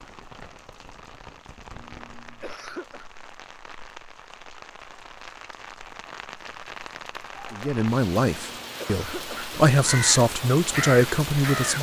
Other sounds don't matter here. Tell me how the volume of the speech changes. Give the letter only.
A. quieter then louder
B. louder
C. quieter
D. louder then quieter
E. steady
A.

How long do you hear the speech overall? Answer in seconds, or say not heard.
4 s.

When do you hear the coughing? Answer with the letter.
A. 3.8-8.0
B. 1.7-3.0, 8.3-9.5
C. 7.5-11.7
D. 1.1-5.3
B.